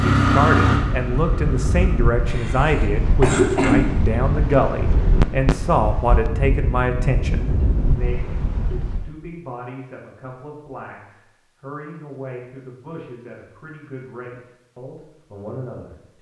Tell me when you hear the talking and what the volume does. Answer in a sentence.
You can hear the talking from 0.1 to 16.1 s, getting quieter.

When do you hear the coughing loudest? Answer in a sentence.
The loudest moment of the coughing is at 4 seconds.